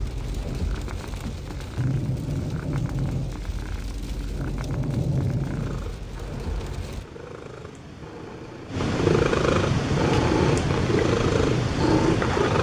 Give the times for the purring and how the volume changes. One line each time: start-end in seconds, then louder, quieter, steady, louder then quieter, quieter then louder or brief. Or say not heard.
0.0-12.5 louder.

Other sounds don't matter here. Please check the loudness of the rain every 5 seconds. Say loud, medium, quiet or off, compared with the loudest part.
loud, loud, off.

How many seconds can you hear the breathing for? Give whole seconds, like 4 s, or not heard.
not heard.